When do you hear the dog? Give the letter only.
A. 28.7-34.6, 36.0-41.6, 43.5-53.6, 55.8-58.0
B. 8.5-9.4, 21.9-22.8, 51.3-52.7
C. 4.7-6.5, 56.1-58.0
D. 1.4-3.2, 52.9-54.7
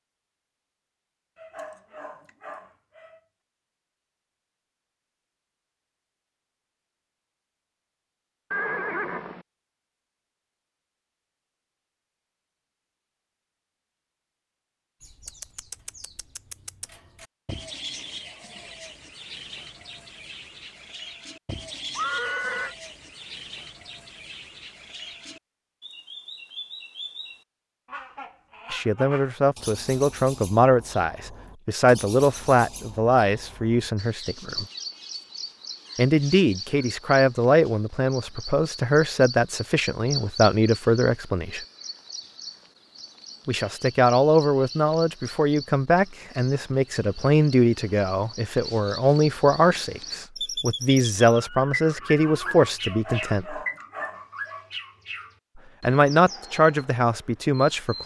D.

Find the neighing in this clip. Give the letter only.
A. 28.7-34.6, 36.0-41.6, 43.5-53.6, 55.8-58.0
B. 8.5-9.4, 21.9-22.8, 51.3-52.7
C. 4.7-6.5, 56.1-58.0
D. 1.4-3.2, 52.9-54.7
B.